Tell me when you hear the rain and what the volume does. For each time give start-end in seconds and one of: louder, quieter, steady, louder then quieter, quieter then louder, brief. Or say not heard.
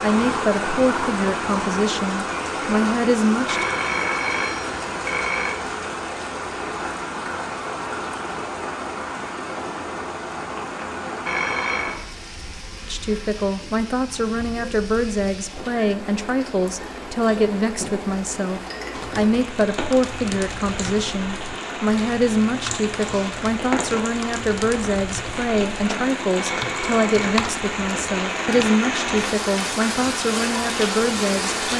0.0-31.7 quieter then louder.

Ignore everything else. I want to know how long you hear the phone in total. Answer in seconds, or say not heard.
4 s.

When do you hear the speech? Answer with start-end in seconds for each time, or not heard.
0.0-3.6, 12.8-31.7.